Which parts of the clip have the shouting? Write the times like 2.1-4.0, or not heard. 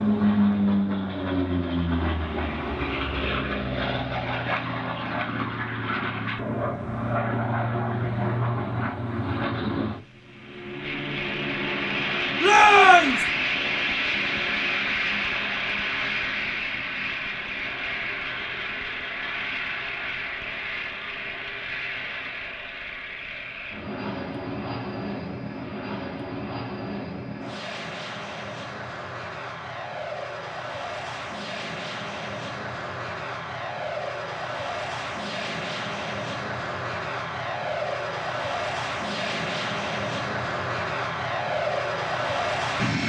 12.4-13.2.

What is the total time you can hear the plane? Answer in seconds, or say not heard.
43 s.